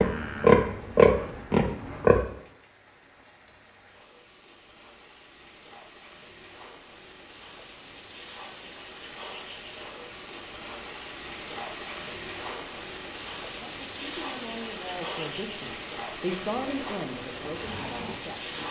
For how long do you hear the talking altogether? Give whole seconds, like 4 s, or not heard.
5 s.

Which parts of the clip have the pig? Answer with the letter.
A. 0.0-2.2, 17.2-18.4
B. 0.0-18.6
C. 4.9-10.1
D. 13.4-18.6
A.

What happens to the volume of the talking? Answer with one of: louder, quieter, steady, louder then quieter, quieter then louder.
louder then quieter.